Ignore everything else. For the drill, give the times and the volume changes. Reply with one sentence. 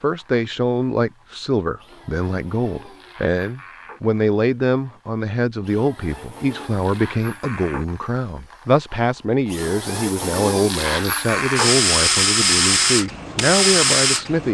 The drill can be heard from 0.0 to 14.4 s, getting louder.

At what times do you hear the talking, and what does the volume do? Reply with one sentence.
You can hear the talking from 0.0 to 14.4 s, at a steady volume.